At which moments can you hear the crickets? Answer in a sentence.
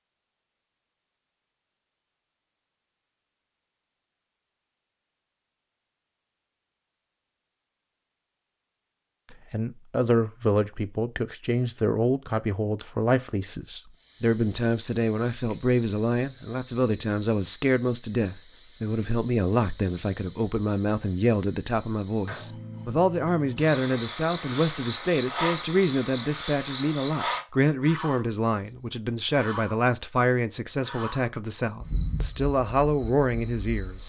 The crickets can be heard from 13.9 to 34.0 s.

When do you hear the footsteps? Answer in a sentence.
You can't hear the footsteps here.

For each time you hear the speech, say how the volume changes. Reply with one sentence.
The speech can be heard from 9.3 to 34.0 s, at a steady volume.